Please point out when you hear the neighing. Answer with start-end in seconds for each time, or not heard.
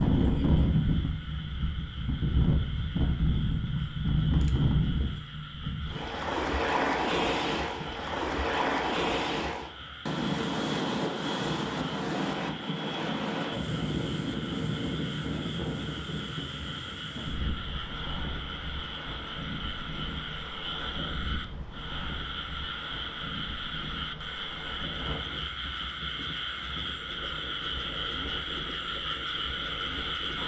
not heard.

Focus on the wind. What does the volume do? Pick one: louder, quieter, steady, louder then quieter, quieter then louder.
quieter.